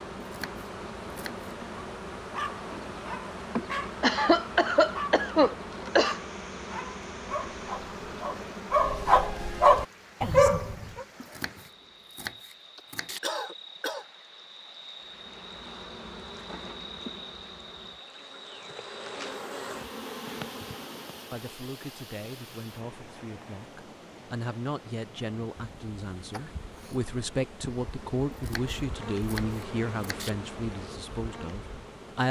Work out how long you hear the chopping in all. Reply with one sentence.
You can hear the chopping for 5 seconds altogether.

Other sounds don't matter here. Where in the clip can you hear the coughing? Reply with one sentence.
The coughing can be heard from 3.5 to 6.2 s, from 12.8 to 14.1 s and from 25.6 to 27.1 s.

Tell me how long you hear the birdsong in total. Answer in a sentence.
The birdsong can't be heard in this clip.